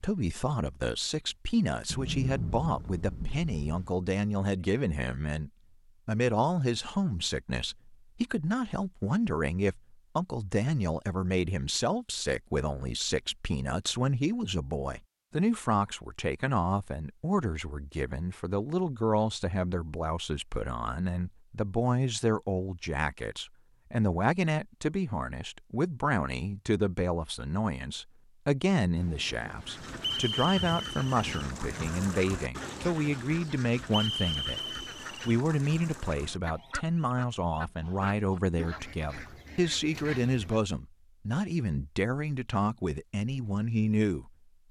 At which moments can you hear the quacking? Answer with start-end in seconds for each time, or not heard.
29.6-40.6.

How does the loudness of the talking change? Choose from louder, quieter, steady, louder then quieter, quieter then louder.
steady.